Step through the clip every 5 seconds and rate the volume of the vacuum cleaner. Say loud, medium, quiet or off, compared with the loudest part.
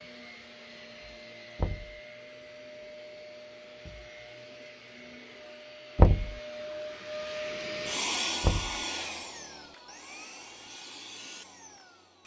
medium, loud, medium.